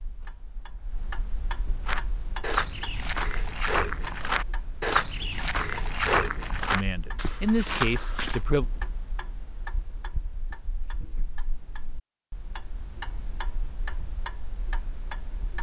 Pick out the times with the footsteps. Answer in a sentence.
You can hear the footsteps from 1.9 to 8.4 s.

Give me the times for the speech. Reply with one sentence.
The speech can be heard from 6.7 to 8.7 s.